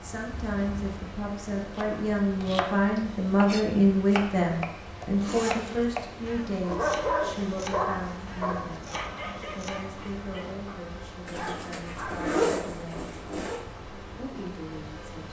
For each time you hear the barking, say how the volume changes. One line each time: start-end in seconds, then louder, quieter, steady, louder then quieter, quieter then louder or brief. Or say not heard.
6.6-12.3 quieter then louder.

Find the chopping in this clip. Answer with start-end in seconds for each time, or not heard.
1.8-9.9.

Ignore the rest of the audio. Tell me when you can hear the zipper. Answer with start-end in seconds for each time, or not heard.
0.4-1.1, 5.2-6.0, 11.2-13.6.